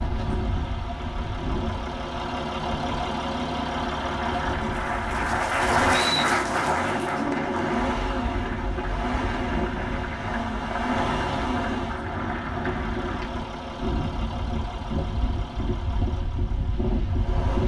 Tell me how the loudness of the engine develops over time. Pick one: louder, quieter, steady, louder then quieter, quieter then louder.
quieter.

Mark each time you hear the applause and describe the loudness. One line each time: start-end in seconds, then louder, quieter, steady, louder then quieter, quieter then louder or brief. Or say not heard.
3.7-13.3 quieter.